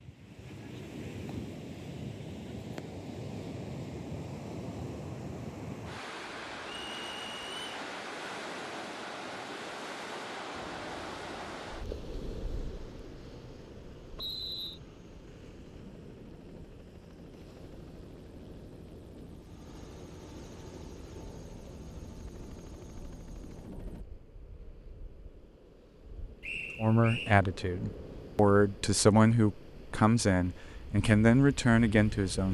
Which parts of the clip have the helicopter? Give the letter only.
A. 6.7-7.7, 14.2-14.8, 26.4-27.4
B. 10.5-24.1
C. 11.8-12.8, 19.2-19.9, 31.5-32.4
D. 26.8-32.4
B.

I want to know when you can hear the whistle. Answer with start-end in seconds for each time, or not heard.
6.7-7.7, 14.2-14.8, 26.4-27.4.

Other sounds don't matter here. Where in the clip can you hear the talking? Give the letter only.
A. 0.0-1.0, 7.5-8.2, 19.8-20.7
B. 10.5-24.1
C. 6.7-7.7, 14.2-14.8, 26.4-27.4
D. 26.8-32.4
D.